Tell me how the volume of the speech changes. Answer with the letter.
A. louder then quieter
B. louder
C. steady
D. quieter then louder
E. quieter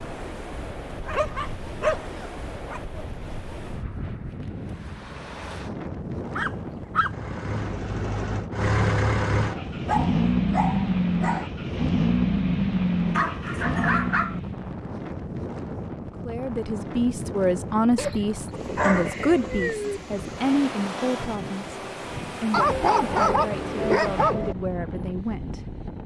E.